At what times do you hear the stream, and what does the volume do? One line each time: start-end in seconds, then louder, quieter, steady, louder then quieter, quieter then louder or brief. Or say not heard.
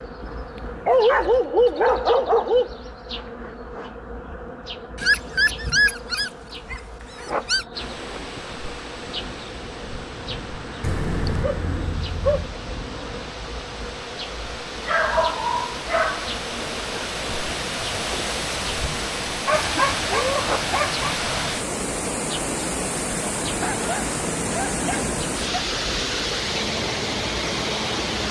7.7-28.2 louder.